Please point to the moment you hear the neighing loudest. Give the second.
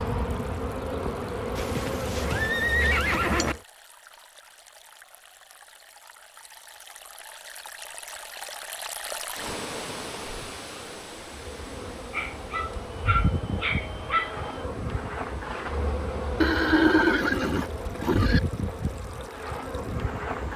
17 s.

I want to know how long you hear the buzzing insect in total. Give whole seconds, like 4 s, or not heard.
13 s.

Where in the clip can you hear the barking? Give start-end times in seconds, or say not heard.
12.1-14.7.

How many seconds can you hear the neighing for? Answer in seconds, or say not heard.
4 s.